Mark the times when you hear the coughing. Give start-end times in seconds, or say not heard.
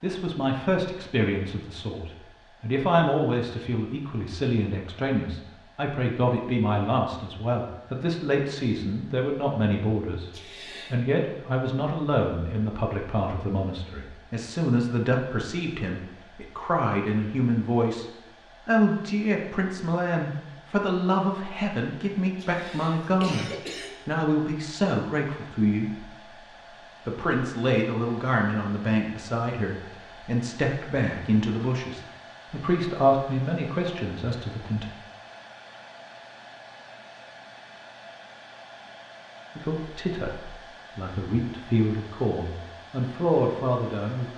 10.3-10.9, 22.4-23.9.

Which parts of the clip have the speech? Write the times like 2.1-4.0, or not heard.
0.0-26.3, 27.1-34.9, 39.5-44.3.